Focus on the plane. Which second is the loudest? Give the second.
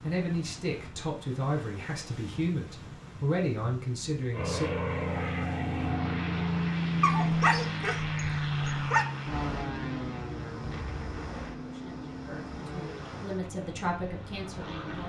7 s.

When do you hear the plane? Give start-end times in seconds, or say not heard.
4.3-15.0.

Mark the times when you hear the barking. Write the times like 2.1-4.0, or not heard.
7.0-9.1.